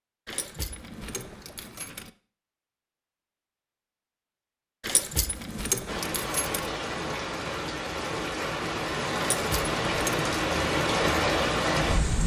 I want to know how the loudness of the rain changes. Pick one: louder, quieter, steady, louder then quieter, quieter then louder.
louder.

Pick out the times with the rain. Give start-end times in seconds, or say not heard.
5.8-12.2.